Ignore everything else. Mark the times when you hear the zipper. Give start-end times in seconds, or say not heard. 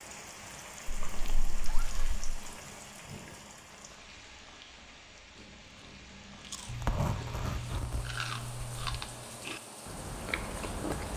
0.8-2.4, 6.7-9.0.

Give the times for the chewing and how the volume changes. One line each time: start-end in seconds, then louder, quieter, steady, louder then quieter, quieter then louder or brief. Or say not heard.
5.3-11.1 louder.